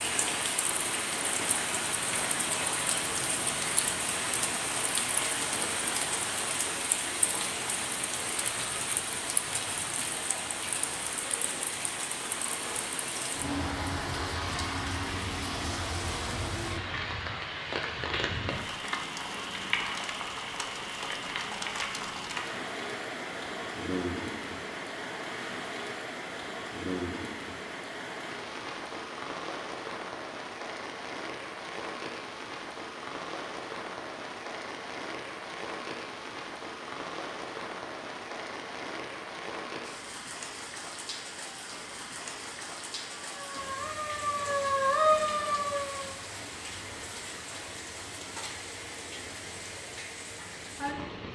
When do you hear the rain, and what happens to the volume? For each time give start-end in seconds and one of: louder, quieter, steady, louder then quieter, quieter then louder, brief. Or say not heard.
0.0-51.3 quieter.